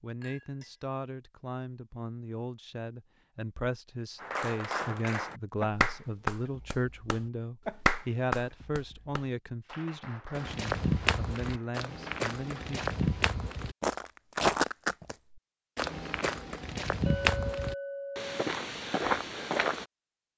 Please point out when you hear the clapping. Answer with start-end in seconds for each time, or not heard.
4.2-13.1.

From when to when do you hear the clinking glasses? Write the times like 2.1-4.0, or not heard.
0.2-0.7, 17.1-18.4.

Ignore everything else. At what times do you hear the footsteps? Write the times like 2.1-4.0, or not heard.
10.3-19.9.